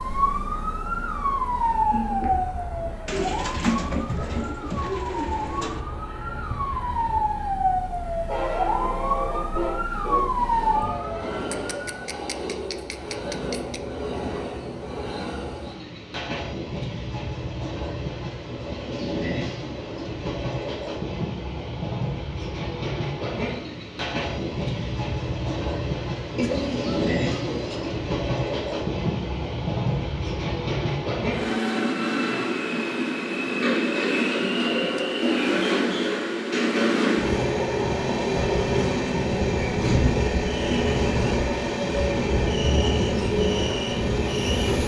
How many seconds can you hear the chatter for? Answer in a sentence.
You can't hear the chatter here.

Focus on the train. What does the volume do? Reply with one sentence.
The volume of the train goes up.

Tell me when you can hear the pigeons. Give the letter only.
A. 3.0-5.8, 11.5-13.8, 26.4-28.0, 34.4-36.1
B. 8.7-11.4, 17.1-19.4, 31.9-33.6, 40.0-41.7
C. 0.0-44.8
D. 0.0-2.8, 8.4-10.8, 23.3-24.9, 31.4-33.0
A.